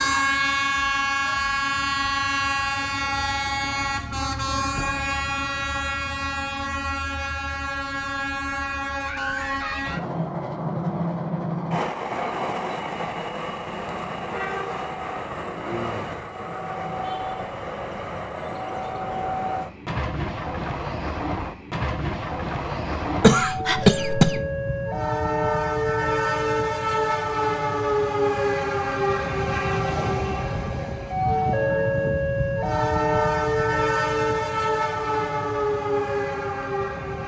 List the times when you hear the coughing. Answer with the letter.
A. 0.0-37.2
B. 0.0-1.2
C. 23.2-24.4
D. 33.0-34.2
C.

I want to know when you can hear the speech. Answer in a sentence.
You can't hear the speech here.